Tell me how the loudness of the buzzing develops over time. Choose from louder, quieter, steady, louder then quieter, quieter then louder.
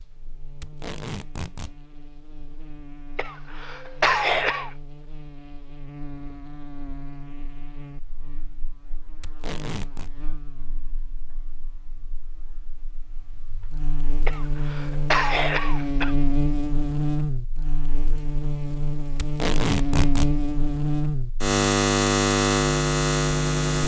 louder.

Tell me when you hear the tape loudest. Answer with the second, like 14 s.
20 s.